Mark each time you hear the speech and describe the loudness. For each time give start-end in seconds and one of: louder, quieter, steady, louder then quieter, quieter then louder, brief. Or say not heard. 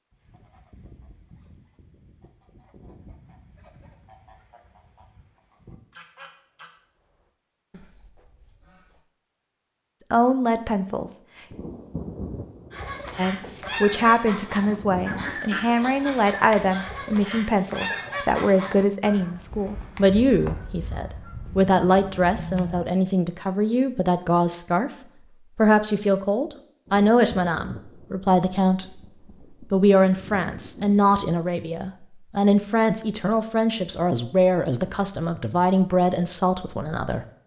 10.1-11.2 brief
13.2-24.9 steady
25.6-37.2 steady.